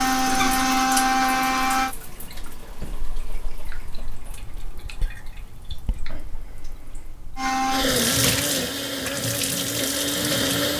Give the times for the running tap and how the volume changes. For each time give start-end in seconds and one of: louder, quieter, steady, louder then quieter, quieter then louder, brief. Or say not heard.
0.0-10.7 quieter then louder.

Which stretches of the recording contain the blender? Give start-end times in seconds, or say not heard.
0.0-1.9, 7.3-10.7.